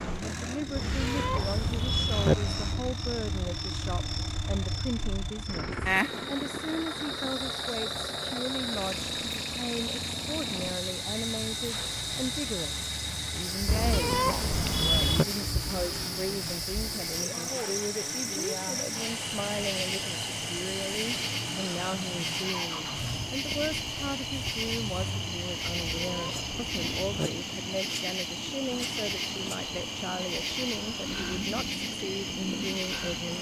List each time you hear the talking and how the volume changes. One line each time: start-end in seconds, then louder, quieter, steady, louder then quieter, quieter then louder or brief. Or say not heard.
0.0-33.3 steady.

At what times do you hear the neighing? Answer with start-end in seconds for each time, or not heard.
not heard.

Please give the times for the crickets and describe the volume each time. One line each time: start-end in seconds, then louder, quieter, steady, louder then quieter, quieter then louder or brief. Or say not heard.
0.0-33.3 steady.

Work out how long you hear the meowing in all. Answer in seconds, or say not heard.
5 s.